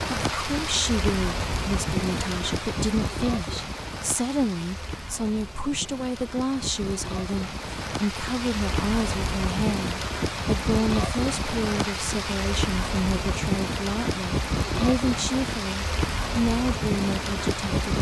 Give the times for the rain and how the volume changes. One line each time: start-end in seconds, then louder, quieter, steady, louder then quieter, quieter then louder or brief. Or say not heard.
0.0-17.9 quieter then louder.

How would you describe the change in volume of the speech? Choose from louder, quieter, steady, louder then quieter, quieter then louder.
steady.